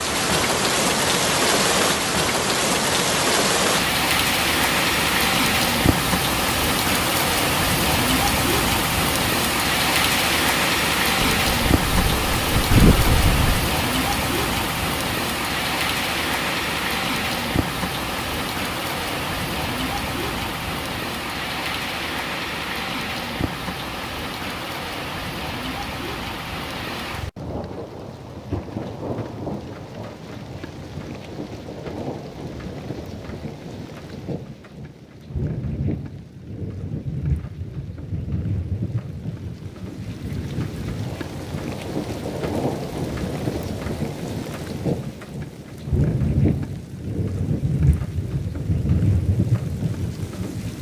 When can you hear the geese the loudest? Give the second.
13 s.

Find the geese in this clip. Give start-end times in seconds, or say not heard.
11.2-13.7.